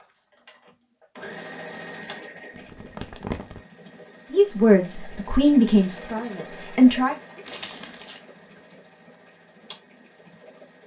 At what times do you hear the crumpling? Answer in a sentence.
You can hear the crumpling from 2.5 to 3.6 s and from 7.5 to 8.2 s.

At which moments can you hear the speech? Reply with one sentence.
You can hear the speech from 4.3 to 7.2 s.